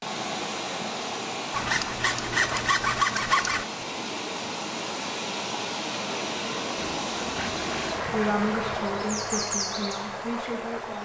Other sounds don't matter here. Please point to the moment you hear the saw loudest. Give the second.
3 s.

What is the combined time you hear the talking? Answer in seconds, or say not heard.
3 s.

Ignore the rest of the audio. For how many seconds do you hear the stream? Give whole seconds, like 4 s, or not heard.
11 s.